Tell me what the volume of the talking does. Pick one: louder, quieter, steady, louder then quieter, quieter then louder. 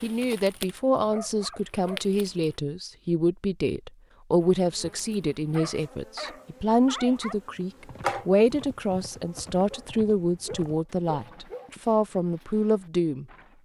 steady.